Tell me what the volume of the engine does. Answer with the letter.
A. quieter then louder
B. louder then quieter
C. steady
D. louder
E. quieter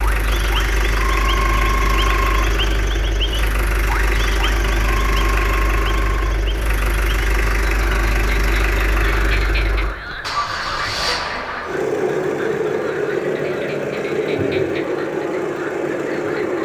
C.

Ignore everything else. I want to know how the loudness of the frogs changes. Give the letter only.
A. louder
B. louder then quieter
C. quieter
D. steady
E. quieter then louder
C.